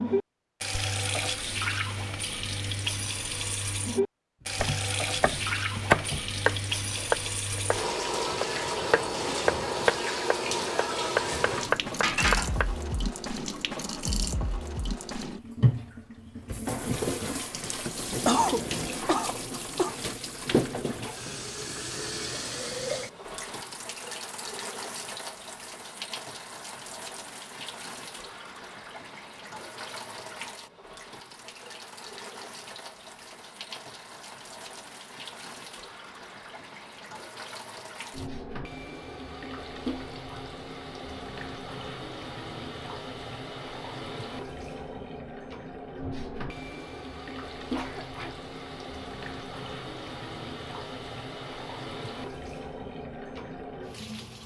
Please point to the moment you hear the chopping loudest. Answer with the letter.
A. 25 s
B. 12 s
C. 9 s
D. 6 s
D.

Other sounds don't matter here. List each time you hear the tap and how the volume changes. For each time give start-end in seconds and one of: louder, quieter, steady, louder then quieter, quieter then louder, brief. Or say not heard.
0.0-54.4 quieter.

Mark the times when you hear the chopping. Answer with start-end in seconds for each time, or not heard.
4.5-12.7.